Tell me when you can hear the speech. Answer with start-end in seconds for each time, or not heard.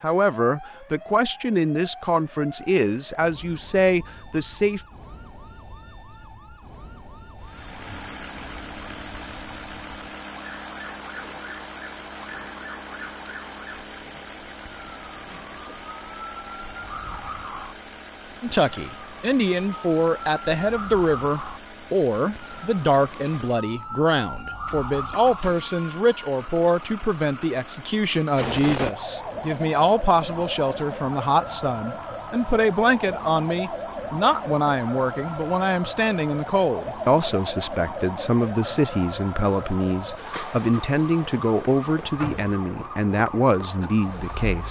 0.0-4.8, 18.4-44.6.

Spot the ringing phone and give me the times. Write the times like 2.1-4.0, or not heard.
not heard.